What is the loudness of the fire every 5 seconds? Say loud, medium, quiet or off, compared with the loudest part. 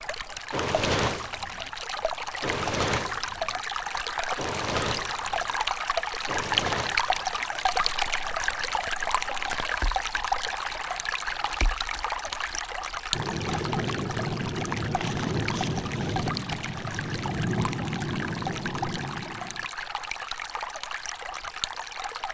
loud, medium, loud, loud, off.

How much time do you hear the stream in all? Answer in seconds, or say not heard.
22 s.